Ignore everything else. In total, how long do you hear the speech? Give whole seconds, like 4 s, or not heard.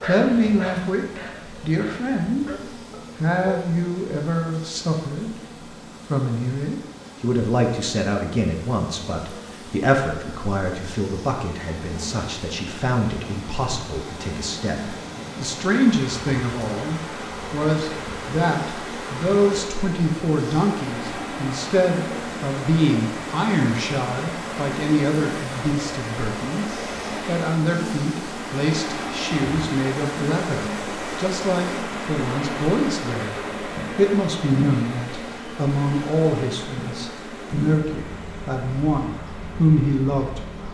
39 s.